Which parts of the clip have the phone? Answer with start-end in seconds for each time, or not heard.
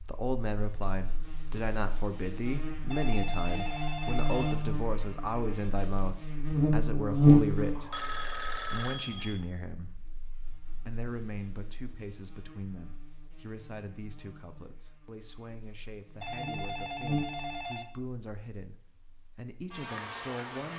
2.9-4.6, 7.8-9.4, 16.2-17.9.